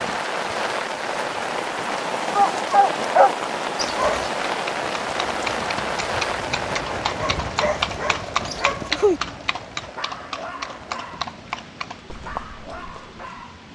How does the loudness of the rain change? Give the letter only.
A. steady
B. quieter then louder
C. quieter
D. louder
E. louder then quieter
C.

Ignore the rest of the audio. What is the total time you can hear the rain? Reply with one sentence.
You can hear the rain for 14 seconds altogether.